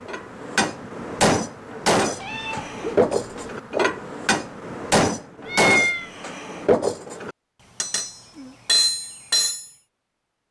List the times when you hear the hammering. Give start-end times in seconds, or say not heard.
0.1-9.7.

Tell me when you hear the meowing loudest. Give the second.
6 s.